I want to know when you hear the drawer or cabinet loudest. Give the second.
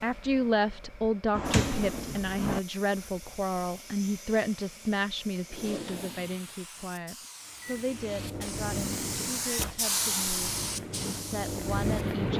2 s.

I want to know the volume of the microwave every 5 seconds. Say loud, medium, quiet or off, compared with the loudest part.
off, medium, loud.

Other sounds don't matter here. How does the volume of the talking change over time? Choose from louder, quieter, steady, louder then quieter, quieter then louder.
quieter.